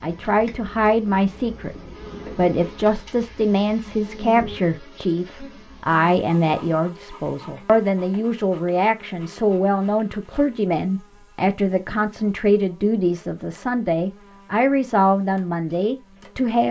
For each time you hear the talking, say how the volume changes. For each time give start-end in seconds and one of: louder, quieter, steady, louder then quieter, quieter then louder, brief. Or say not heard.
0.0-16.6 steady.